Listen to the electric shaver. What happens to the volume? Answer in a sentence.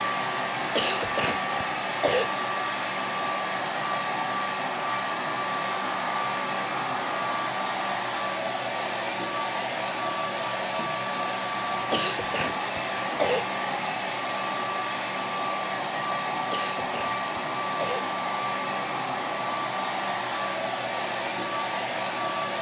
The volume of the electric shaver stays about the same.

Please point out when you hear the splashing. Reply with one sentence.
The splashing can't be heard in this clip.